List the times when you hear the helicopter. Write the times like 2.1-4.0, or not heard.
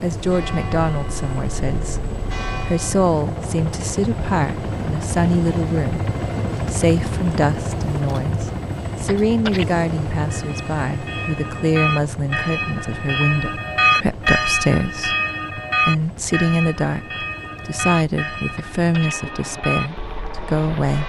0.0-21.0.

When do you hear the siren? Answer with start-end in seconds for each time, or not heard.
not heard.